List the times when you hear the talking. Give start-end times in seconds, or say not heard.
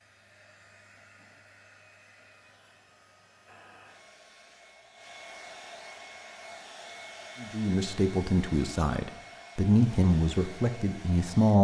7.4-11.5.